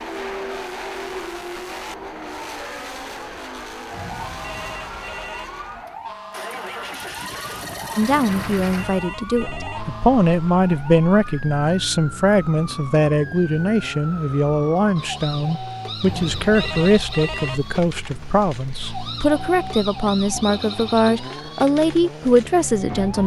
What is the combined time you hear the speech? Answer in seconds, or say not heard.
15 s.